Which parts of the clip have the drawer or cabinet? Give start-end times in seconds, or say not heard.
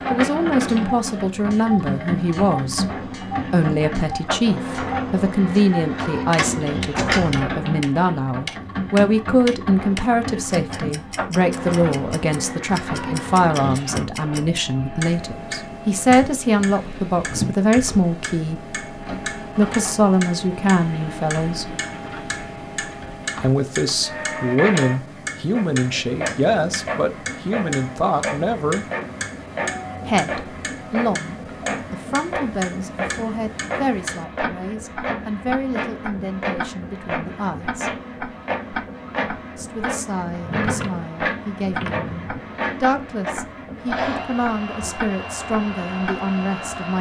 6.3-7.5, 40.4-42.4.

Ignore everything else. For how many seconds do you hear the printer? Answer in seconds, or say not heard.
47 s.